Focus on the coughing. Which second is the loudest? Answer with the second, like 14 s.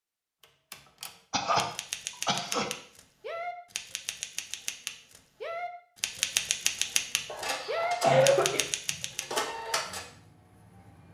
8 s.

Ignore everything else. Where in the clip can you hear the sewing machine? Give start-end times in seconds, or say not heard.
7.2-11.0.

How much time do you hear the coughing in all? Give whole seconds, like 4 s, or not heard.
2 s.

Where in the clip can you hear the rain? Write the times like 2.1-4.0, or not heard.
not heard.